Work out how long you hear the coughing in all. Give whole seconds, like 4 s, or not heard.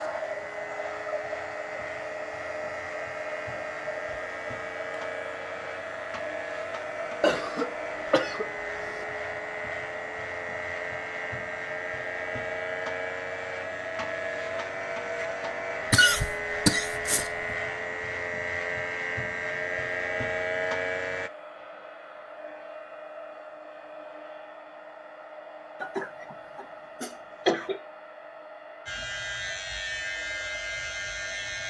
5 s.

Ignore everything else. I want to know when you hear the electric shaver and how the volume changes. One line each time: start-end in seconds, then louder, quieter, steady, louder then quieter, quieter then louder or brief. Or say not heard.
0.0-21.3 louder
28.9-31.6 brief.